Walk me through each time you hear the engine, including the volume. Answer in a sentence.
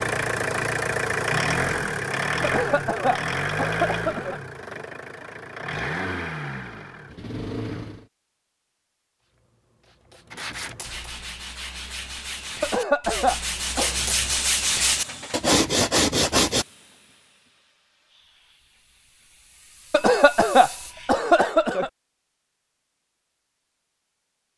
You can hear the engine from 0.0 to 8.1 s, getting quieter.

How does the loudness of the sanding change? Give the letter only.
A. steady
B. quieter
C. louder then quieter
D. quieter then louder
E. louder
E.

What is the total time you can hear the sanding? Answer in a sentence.
You can hear the sanding for 6 seconds altogether.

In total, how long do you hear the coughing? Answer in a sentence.
The coughing can be heard for 5 seconds in total.